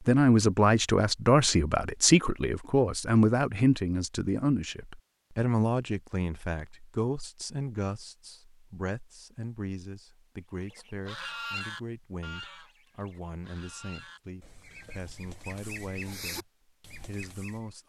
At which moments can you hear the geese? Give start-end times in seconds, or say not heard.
10.7-17.6.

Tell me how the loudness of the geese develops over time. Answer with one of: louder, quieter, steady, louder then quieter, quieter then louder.
quieter then louder.